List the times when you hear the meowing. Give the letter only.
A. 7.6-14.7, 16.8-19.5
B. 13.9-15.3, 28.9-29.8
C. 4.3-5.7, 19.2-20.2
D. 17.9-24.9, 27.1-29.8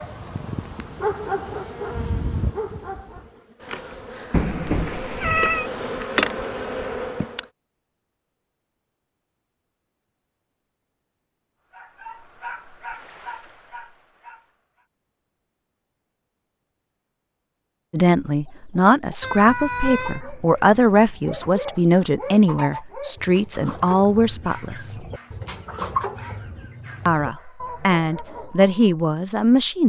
C.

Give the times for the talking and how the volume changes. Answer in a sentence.
The talking can be heard from 17.9 to 24.9 s, at a steady volume; and briefly from 27.1 to 29.8 s.